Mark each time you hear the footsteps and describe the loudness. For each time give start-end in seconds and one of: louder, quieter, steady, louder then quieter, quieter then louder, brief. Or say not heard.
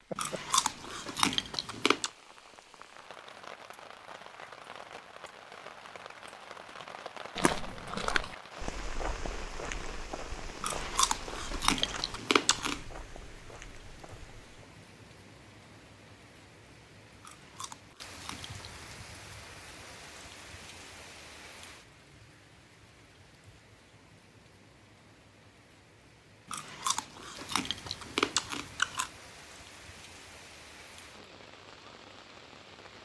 7.3-14.7 quieter.